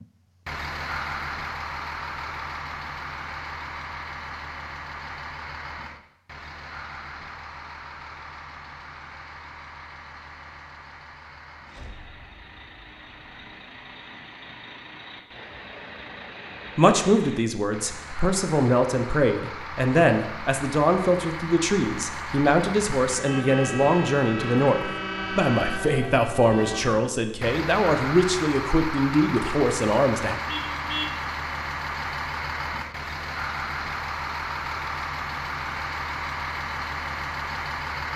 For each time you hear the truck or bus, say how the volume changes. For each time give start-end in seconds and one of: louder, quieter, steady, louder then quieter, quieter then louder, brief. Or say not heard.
0.0-38.1 quieter then louder.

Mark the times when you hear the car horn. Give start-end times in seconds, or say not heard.
30.4-31.1.